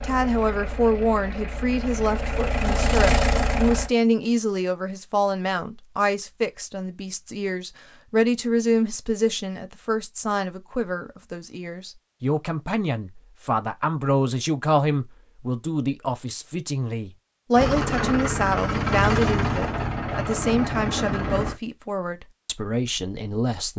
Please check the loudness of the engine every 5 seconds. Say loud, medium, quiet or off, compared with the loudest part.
loud, off, off, loud, loud.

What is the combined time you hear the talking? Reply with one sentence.
The talking can be heard for 24 seconds in total.